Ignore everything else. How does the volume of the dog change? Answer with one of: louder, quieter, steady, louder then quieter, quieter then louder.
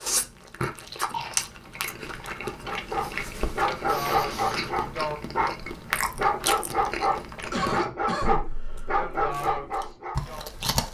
steady.